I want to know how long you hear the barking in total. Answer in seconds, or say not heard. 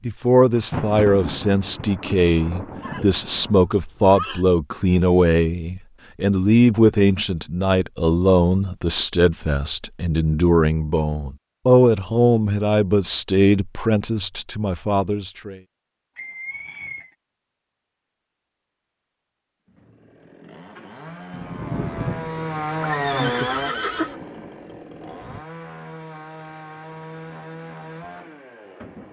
not heard.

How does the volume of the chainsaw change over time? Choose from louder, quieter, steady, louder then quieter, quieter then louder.
louder then quieter.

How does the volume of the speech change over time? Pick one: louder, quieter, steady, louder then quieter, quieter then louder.
steady.